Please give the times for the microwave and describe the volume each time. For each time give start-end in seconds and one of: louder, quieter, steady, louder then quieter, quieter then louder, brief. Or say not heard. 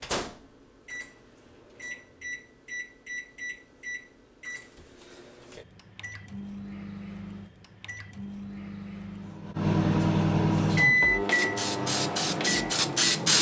0.0-13.2 louder.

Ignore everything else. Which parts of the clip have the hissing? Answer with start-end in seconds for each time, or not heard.
10.8-13.3.